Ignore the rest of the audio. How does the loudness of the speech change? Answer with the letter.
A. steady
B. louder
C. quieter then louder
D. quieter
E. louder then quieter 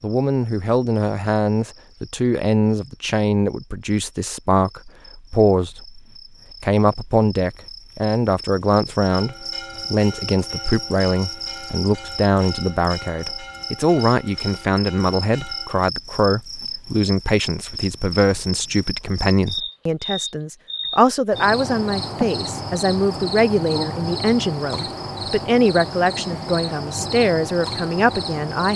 A.